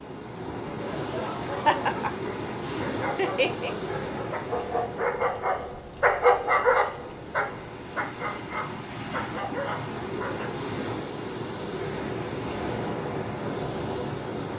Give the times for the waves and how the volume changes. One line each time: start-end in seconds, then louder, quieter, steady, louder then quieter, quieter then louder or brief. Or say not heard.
0.0-14.5 quieter then louder.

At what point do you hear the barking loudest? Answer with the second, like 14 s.
6 s.